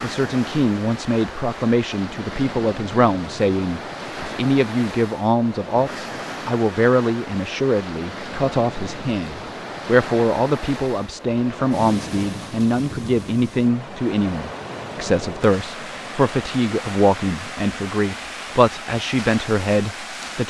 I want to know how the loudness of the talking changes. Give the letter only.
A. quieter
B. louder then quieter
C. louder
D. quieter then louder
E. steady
E.